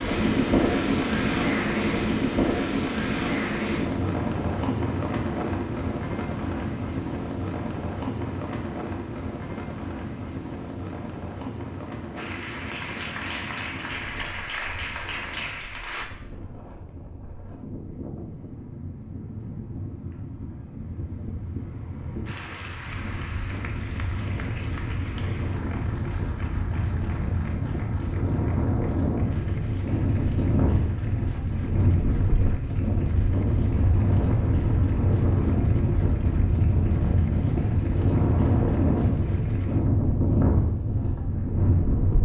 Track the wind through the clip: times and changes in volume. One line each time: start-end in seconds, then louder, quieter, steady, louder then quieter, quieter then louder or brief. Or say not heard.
0.0-42.2 quieter then louder.